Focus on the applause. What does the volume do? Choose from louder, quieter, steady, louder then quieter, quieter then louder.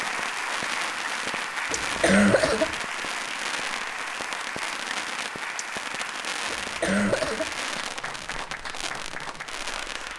quieter.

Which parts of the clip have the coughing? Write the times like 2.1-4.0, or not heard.
1.7-2.8, 6.5-7.5.